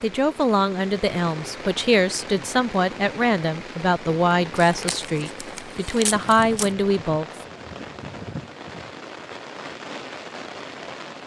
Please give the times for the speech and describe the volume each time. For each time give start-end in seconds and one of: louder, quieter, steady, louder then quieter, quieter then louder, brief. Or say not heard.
0.0-7.2 steady.